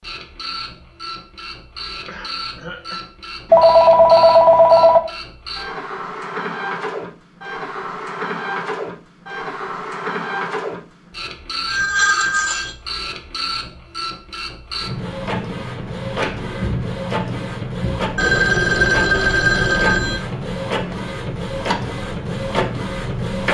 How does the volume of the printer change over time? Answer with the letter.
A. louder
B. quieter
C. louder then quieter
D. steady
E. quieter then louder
A.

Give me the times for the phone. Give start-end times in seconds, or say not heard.
3.5-5.0, 11.7-12.8, 18.1-20.2.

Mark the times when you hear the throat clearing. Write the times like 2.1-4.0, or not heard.
2.0-3.0.